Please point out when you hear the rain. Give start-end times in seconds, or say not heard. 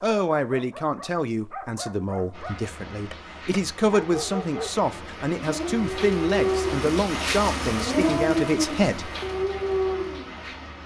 2.3-10.8.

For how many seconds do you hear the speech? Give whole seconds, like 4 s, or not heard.
9 s.